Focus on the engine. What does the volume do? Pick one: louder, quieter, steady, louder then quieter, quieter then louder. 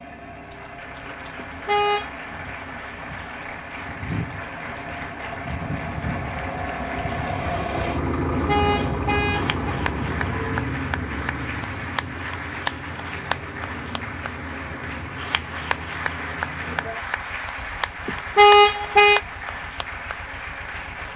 louder then quieter.